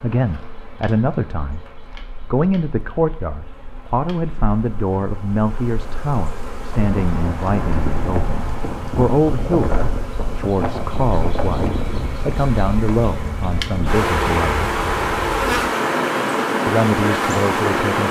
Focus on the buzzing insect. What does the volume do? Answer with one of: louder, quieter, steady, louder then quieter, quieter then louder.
louder.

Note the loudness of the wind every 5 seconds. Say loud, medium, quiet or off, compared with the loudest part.
off, loud, loud, loud.